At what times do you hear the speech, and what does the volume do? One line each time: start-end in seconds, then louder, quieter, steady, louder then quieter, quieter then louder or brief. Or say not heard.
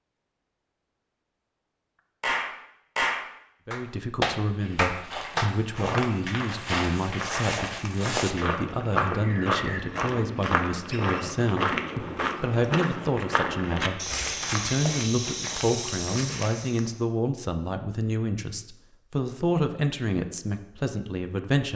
3.6-21.7 steady.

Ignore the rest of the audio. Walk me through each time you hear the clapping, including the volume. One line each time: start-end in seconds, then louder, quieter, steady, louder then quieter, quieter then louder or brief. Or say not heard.
2.2-8.6 quieter.